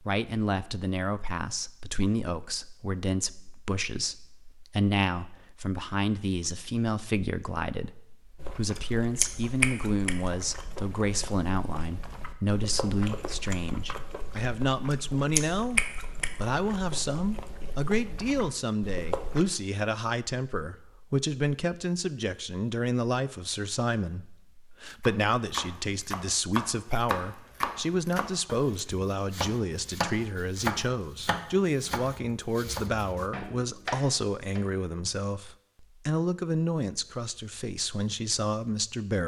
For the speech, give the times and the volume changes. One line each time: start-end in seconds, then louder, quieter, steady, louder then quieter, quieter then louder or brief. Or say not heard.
0.0-39.2 steady.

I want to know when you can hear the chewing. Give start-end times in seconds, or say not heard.
8.3-19.4.